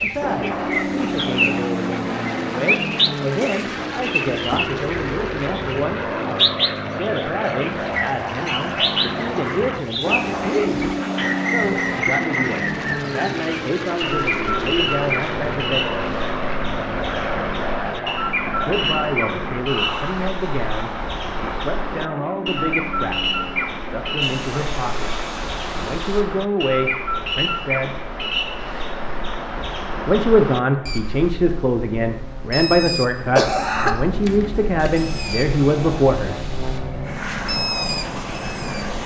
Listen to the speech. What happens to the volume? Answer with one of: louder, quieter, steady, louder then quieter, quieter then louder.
louder.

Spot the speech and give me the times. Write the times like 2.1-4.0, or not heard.
0.0-10.8, 11.5-16.0, 18.5-27.9, 30.1-36.4.